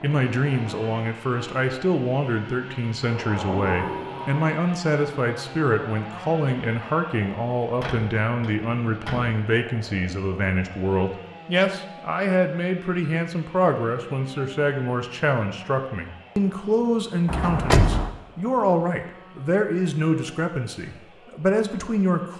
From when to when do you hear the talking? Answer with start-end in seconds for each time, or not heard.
0.0-22.3.